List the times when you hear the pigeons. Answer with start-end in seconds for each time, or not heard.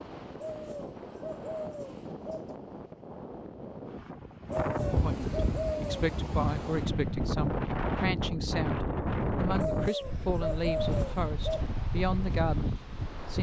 0.3-2.5, 4.5-5.9, 9.6-11.7.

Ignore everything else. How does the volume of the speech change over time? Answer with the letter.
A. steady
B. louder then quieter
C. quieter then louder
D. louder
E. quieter
A.